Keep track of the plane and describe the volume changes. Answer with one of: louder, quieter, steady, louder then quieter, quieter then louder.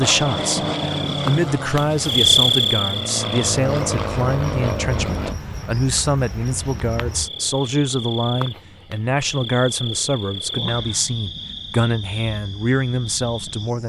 quieter then louder.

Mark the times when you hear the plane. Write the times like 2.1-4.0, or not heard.
0.0-5.3.